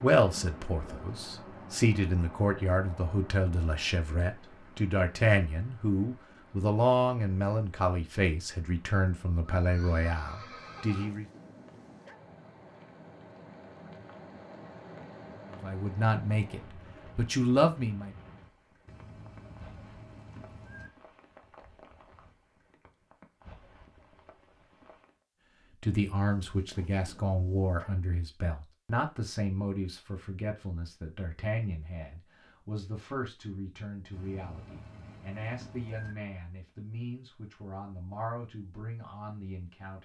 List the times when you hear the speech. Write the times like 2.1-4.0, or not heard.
0.0-11.2, 15.5-18.1, 25.8-40.0.